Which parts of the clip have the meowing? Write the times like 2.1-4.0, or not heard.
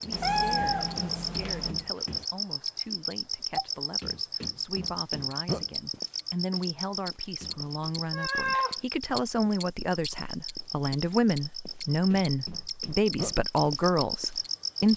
0.1-1.8, 7.8-8.8.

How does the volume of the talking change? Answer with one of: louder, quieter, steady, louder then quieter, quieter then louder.
louder.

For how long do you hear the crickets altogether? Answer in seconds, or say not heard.
15 s.